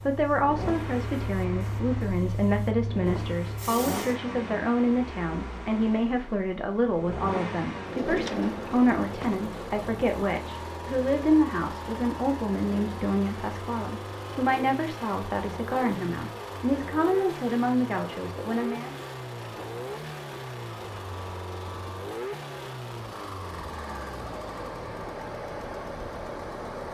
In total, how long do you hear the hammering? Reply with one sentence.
The hammering can't be heard in this clip.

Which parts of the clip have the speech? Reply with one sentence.
The speech can be heard from 0.1 to 18.9 s.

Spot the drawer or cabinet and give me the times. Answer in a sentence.
The drawer or cabinet can be heard from 7.8 to 9.3 s.